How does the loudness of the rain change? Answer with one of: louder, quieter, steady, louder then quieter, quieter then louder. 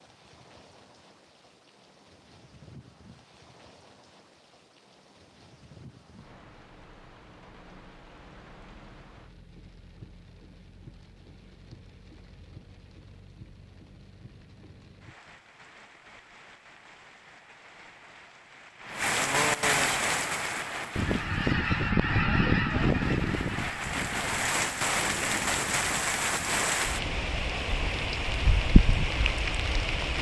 louder.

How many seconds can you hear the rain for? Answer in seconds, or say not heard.
30 s.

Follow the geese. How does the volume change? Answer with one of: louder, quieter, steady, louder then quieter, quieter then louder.
quieter.